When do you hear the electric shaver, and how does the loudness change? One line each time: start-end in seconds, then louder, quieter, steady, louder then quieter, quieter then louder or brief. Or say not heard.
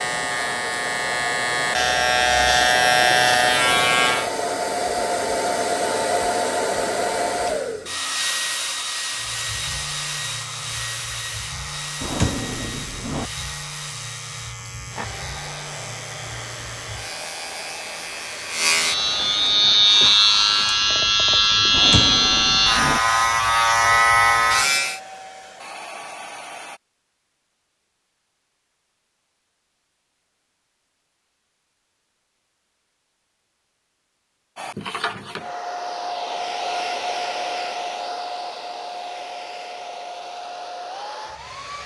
0.0-4.3 louder
9.1-25.0 louder.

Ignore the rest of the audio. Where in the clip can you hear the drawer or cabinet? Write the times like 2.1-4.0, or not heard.
12.0-13.3, 21.7-23.0.